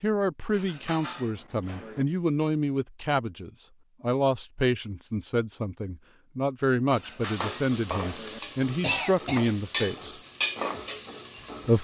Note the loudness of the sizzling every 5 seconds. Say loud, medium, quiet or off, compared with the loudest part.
off, loud, loud.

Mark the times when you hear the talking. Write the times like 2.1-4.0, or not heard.
0.0-10.2.